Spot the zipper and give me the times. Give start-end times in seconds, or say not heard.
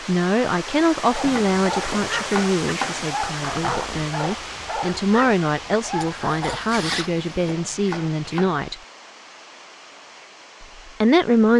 3.5-4.1, 6.0-7.2.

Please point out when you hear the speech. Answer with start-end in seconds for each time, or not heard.
0.1-8.8, 10.6-11.5.